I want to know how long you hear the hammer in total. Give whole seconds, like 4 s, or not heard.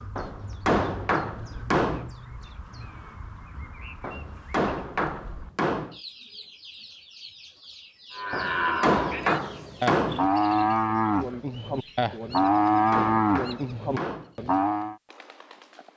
8 s.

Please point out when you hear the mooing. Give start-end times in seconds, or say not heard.
8.1-14.9.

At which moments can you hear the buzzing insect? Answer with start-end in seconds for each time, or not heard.
not heard.